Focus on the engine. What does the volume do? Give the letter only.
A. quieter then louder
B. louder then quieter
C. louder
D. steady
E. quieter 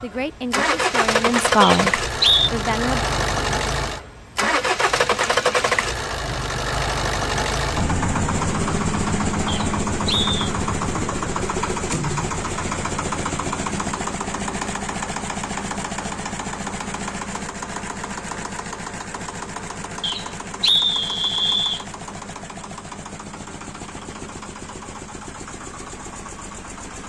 E.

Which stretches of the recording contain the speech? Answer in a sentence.
The speech can be heard from 0.0 to 3.0 s.